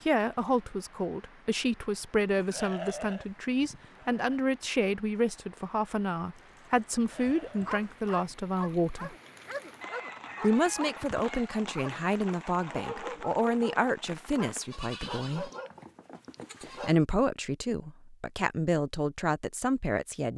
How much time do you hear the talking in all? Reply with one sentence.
The talking can be heard for 18 seconds in total.